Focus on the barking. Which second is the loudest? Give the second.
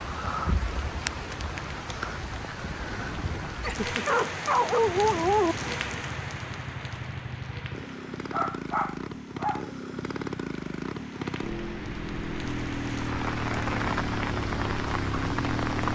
5 s.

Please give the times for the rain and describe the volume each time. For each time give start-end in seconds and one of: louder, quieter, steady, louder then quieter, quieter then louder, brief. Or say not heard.
0.0-15.8 quieter then louder.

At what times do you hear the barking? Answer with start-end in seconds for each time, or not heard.
3.6-5.5, 8.3-9.7.